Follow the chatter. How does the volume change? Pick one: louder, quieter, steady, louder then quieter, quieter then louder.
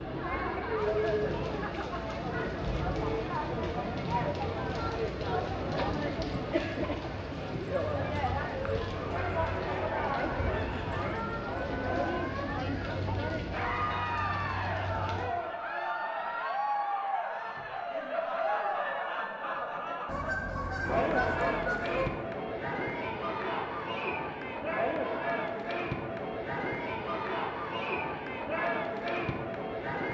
steady.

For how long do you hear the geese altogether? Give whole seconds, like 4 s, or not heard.
4 s.